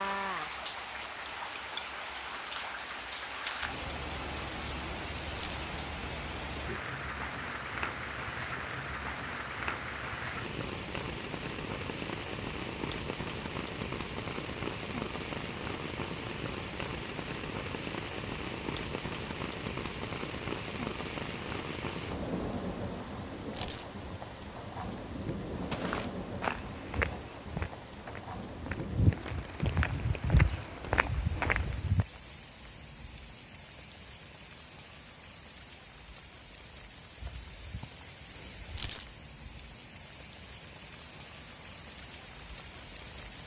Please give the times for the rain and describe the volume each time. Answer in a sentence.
The rain can be heard from 0.0 to 43.4 s, getting quieter.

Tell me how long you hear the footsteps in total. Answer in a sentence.
The footsteps can be heard for 6 seconds in total.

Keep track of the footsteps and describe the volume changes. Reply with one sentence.
The volume of the footsteps goes down, then up.